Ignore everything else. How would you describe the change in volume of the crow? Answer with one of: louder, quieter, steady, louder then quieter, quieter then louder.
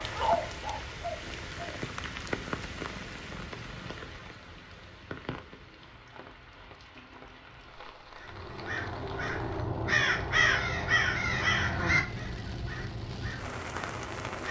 louder then quieter.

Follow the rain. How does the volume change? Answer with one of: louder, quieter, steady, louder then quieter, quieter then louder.
quieter then louder.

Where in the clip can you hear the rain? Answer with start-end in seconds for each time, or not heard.
0.0-14.4.